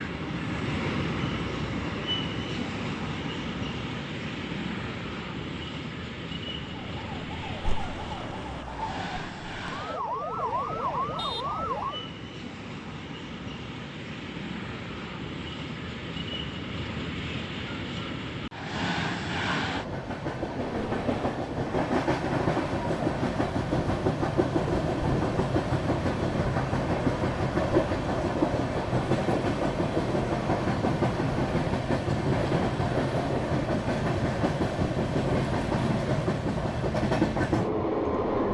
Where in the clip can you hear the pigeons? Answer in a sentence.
You can't hear the pigeons here.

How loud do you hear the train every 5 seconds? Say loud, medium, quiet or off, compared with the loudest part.
medium, medium, quiet, medium, loud, loud, loud, loud.